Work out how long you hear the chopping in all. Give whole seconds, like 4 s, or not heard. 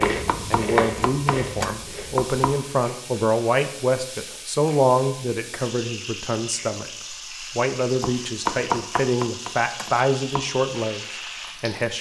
5 s.